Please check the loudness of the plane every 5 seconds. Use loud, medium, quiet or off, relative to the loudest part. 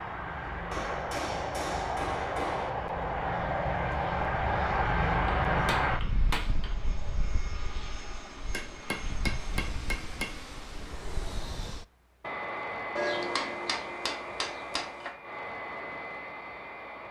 loud, loud, medium, medium.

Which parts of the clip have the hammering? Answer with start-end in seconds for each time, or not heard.
0.7-2.7, 5.5-6.8, 8.5-10.3, 12.9-15.1.